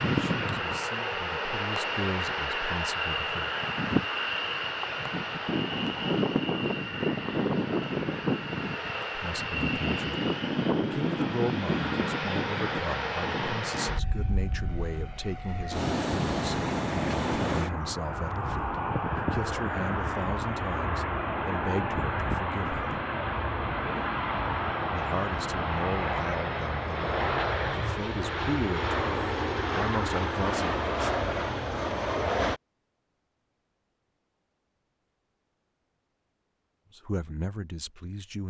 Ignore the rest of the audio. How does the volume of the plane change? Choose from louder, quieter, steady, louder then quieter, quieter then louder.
steady.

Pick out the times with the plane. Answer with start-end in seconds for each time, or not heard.
0.0-32.6.